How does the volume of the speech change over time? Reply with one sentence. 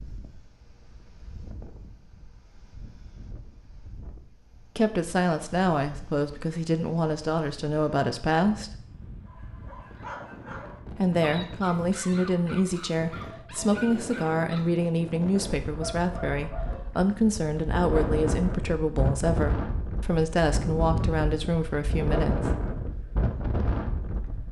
The volume of the speech stays about the same.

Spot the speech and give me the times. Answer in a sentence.
You can hear the speech from 4.8 to 8.7 s and from 10.9 to 22.5 s.